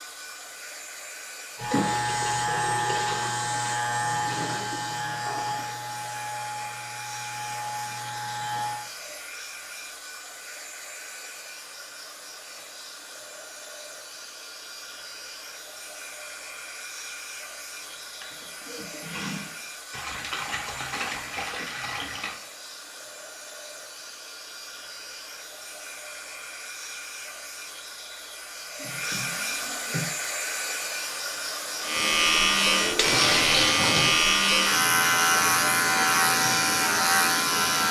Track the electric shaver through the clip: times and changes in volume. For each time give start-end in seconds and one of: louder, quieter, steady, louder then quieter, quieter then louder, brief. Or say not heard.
1.6-8.9 quieter
31.8-37.8 steady.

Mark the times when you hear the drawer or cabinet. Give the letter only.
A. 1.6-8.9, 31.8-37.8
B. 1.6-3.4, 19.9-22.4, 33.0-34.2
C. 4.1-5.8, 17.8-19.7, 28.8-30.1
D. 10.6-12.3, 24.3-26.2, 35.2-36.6
C.